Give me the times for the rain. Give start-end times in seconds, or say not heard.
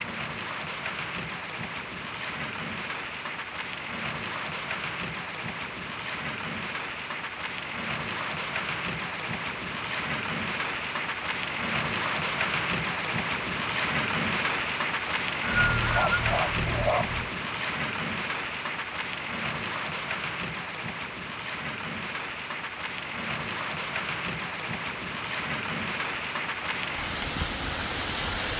0.0-28.5.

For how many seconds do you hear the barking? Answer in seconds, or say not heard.
2 s.